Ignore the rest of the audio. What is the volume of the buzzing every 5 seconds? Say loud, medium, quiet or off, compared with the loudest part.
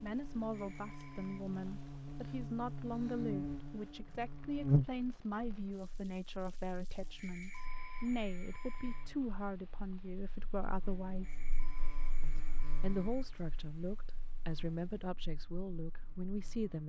loud, quiet, quiet, quiet.